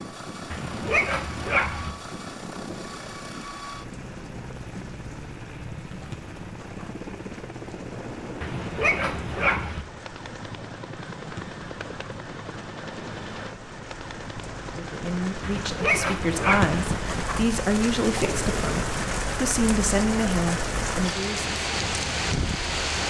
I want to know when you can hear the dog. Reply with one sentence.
The dog can be heard from 0.5 to 1.9 s, from 8.4 to 9.8 s and from 15.4 to 16.8 s.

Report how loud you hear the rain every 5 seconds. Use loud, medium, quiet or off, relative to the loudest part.
quiet, quiet, quiet, loud, loud.